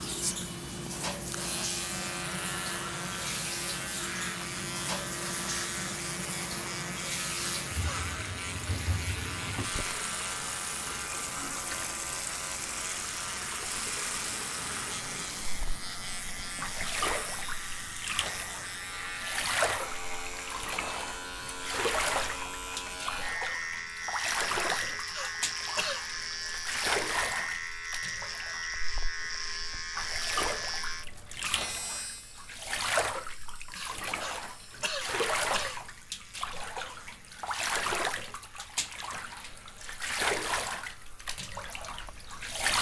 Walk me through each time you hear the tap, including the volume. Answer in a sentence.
The tap can be heard from 0.0 to 42.7 s, at a steady volume.